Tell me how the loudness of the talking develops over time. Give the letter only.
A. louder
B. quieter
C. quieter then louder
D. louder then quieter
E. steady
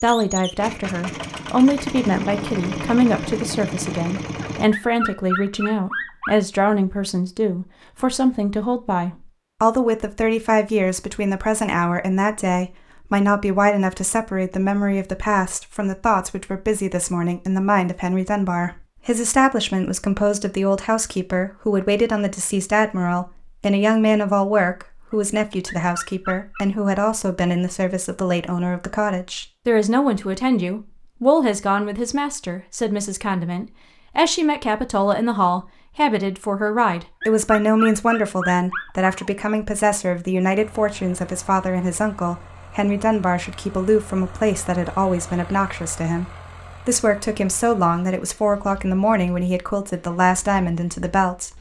E.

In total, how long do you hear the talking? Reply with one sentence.
You can hear the talking for 51 seconds altogether.